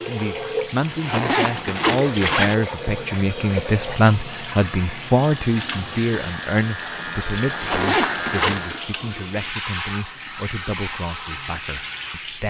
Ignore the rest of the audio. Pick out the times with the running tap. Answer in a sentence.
The running tap can be heard from 0.0 to 12.4 s.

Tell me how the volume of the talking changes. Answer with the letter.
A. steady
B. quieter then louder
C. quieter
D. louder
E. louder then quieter
C.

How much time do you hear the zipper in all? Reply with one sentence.
The zipper can be heard for 3 seconds in total.